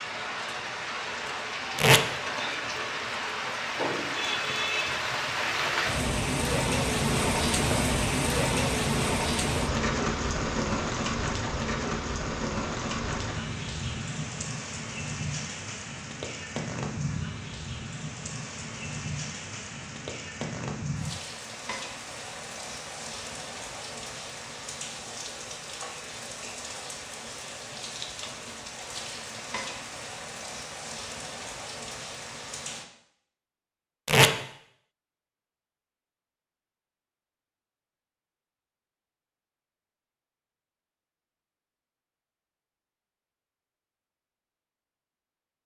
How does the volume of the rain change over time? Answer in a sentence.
The volume of the rain goes down.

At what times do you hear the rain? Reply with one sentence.
You can hear the rain from 0.0 to 32.9 s.